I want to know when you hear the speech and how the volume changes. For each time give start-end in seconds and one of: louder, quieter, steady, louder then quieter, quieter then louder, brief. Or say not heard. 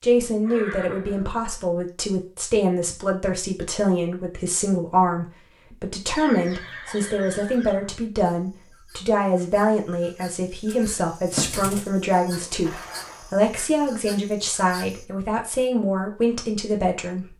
0.0-17.3 steady.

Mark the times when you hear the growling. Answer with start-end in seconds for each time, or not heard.
not heard.